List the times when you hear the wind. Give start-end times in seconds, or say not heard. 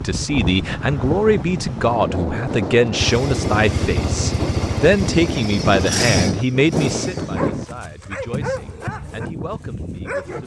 0.0-7.7.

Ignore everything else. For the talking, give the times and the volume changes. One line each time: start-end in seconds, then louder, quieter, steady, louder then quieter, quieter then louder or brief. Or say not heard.
0.0-10.4 quieter.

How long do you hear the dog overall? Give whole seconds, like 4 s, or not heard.
3 s.